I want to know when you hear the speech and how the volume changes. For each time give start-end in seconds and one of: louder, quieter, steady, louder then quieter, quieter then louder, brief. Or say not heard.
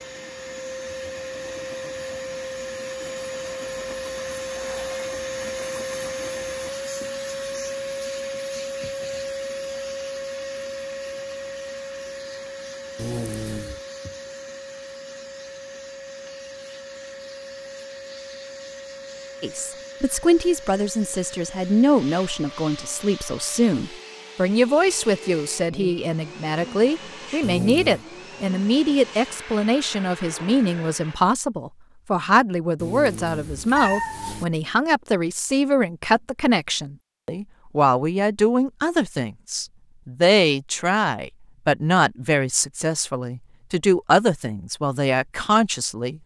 19.4-46.2 steady.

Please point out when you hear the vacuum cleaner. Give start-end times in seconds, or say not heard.
0.0-31.2.